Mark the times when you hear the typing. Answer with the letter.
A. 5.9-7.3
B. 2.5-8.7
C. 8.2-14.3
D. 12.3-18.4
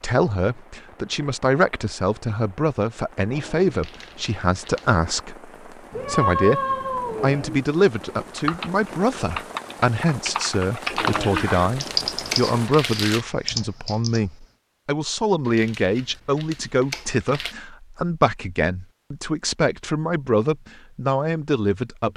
C.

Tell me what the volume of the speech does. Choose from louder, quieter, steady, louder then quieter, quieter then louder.
steady.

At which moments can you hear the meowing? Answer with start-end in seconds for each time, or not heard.
5.9-7.3.